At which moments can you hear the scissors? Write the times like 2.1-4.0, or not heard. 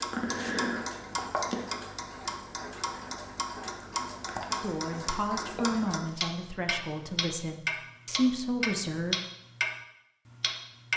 not heard.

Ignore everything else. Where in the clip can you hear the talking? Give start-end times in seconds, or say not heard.
4.6-9.2.